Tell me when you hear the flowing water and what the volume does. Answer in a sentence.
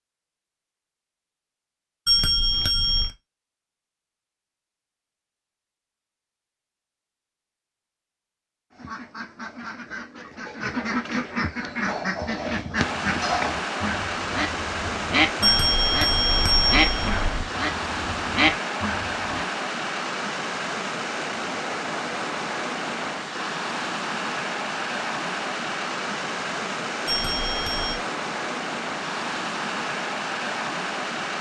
The flowing water can be heard from 12.8 to 31.3 s, at a steady volume.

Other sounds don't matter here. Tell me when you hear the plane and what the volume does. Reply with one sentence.
The plane can't be heard in this clip.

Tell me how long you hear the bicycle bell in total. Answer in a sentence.
You can hear the bicycle bell for 4 seconds altogether.